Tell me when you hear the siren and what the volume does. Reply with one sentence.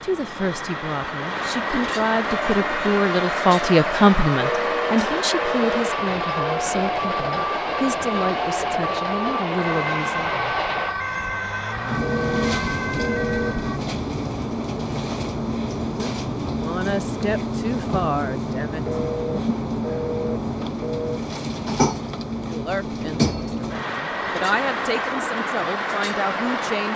You can hear the siren from 2.2 to 13.8 s, at a steady volume.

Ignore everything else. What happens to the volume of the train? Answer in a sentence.
The volume of the train stays about the same.